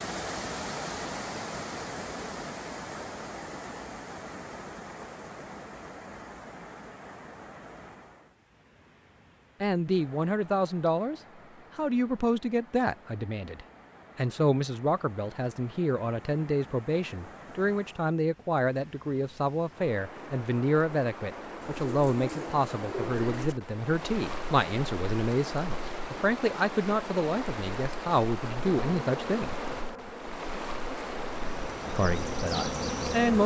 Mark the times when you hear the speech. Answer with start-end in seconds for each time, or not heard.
9.6-29.6, 31.9-33.4.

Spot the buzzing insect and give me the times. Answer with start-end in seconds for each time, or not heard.
28.6-33.4.